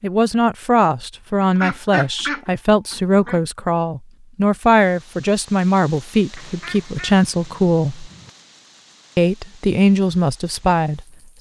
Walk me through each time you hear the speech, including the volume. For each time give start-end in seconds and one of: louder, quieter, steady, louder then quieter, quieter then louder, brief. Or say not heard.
0.0-8.1 steady
9.2-11.3 brief.